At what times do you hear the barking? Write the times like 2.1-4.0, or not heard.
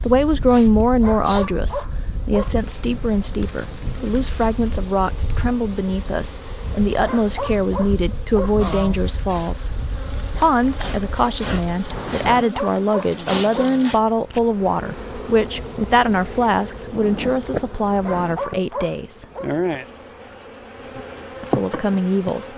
1.0-2.5, 7.0-8.6, 12.4-13.8, 18.1-19.5.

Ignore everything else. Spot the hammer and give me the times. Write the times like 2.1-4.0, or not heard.
not heard.